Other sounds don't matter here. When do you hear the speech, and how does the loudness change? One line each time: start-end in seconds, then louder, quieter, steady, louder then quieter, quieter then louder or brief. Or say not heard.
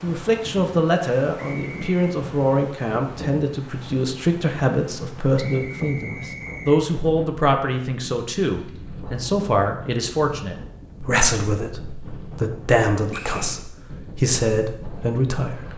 0.0-15.7 steady.